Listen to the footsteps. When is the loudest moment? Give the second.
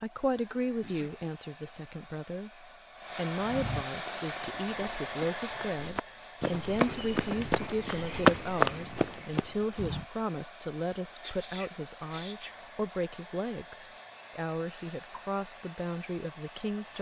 8 s.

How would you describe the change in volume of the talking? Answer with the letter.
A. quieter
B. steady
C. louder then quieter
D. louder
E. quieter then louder
B.